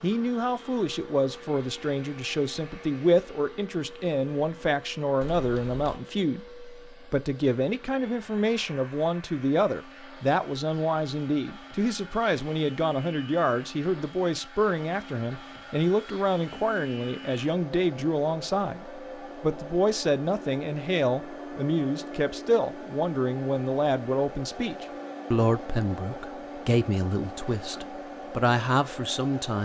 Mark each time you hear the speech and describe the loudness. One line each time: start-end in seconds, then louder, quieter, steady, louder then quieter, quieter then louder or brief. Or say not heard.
0.0-29.6 steady.